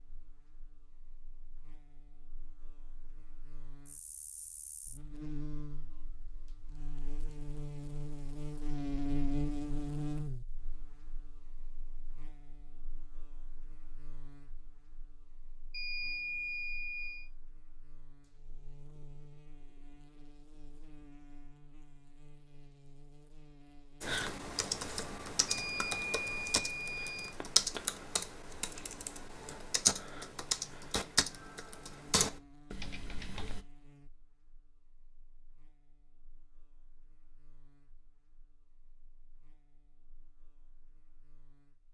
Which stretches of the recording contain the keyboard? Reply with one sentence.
The keyboard can be heard from 24.0 to 33.6 s.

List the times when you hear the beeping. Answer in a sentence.
The beeping can be heard from 15.7 to 17.3 s and from 25.4 to 27.4 s.